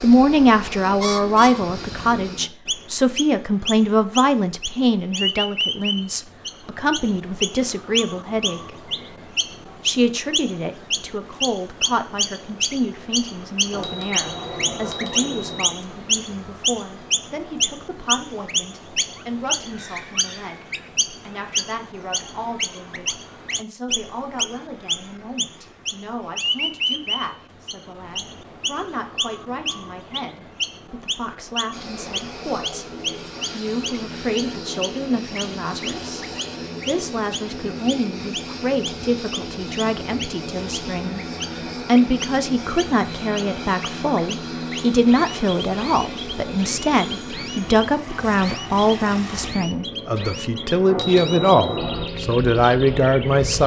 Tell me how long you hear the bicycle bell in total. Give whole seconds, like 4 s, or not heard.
3 s.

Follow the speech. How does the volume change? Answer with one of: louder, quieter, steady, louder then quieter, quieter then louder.
quieter then louder.